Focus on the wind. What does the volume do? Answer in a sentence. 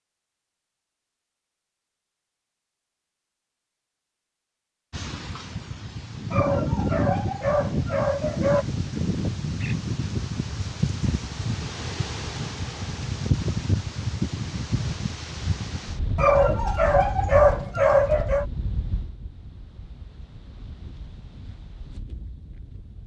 The volume of the wind goes down.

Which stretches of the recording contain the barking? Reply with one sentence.
The barking can be heard from 6.3 to 8.7 s and from 16.1 to 18.4 s.